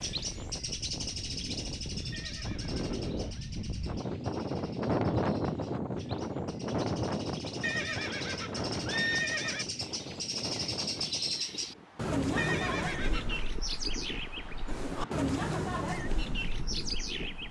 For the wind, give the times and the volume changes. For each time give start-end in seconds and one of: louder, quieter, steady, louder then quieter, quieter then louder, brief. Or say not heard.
0.0-17.4 louder then quieter.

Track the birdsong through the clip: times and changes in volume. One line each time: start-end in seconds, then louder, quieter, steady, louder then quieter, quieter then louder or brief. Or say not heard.
0.0-17.4 quieter then louder.